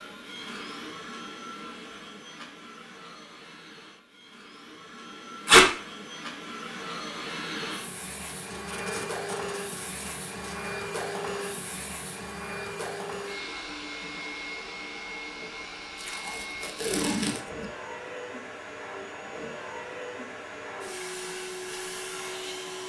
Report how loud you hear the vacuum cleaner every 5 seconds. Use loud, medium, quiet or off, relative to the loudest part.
medium, loud, loud, loud, loud.